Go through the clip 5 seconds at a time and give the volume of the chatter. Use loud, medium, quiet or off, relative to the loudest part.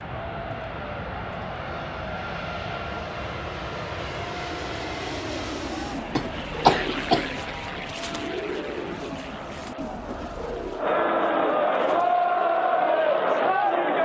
quiet, quiet, loud.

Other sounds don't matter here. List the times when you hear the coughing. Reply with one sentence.
The coughing can be heard from 6.2 to 7.5 s.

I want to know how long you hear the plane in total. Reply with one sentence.
The plane can be heard for 14 seconds in total.